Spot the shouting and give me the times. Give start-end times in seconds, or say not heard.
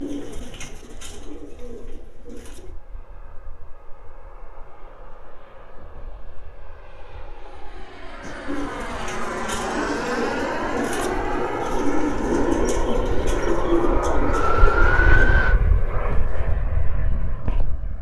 not heard.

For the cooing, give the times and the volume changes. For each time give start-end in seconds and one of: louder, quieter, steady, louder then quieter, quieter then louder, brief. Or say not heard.
0.0-2.8 brief
8.2-15.3 louder.